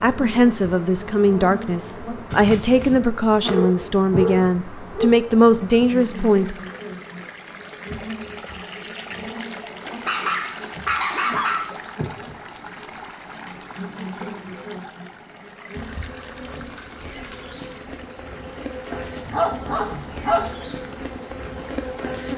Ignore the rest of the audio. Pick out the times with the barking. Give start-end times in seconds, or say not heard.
3.0-5.1, 9.8-11.7, 18.9-20.6.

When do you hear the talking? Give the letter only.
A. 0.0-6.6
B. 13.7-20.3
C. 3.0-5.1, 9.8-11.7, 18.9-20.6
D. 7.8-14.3
A.